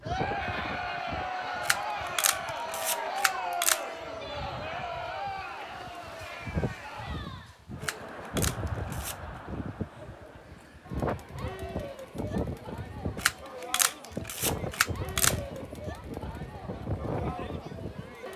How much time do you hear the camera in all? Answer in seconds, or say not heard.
6 s.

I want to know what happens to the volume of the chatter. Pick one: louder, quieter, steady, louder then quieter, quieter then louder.
quieter.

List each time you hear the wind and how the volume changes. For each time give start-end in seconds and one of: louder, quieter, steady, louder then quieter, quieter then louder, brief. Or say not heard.
0.0-18.1 louder.